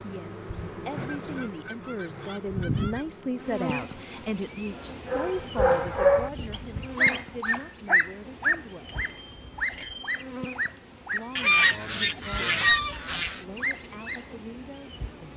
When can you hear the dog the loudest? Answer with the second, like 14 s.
6 s.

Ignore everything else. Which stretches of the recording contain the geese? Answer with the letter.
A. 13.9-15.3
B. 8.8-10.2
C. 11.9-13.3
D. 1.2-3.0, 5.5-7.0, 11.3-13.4
D.